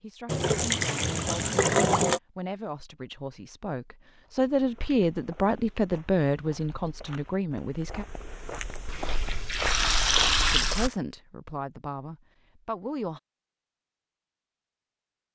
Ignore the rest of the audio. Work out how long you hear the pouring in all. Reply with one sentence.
The pouring can be heard for 4 seconds in total.